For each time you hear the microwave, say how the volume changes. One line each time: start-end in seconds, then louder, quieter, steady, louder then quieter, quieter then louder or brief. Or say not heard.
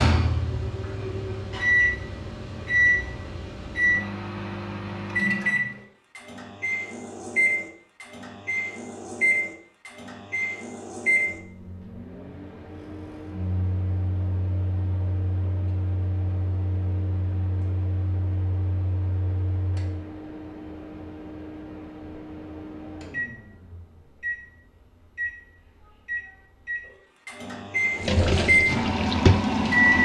0.0-29.9 quieter then louder.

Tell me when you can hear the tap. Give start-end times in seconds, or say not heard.
27.9-29.9.